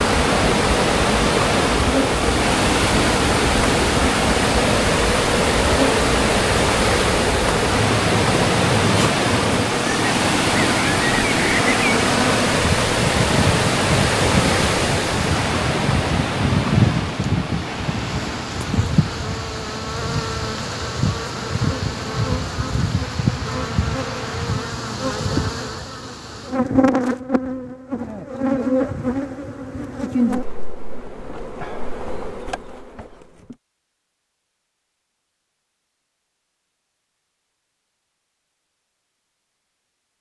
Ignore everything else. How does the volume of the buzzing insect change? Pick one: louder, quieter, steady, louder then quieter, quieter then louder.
steady.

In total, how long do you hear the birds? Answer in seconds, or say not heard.
not heard.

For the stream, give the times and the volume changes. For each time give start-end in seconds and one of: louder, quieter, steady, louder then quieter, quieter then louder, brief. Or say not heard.
0.0-24.6 quieter.